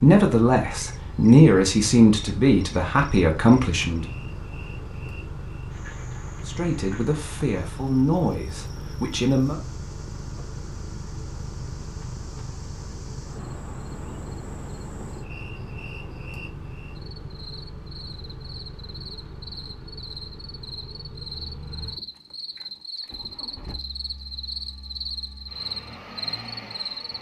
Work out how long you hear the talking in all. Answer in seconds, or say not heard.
7 s.